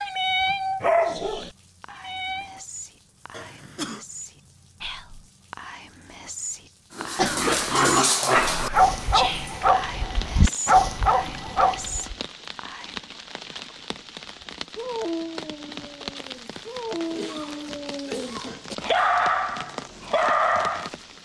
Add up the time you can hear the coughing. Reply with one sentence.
You can hear the coughing for 3 seconds altogether.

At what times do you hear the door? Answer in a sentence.
The door can't be heard in this clip.